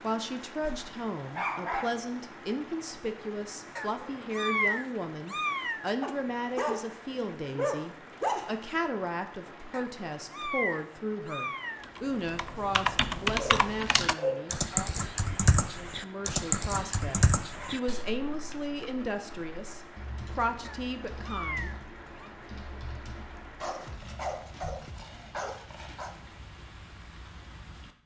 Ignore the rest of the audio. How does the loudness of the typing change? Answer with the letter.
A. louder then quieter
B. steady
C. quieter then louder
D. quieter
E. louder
D.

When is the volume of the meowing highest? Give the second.
5 s.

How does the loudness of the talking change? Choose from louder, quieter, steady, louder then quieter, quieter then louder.
steady.